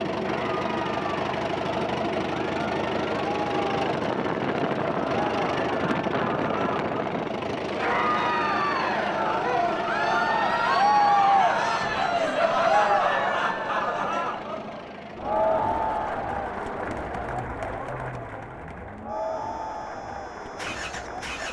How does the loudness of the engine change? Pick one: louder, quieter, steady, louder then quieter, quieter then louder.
quieter.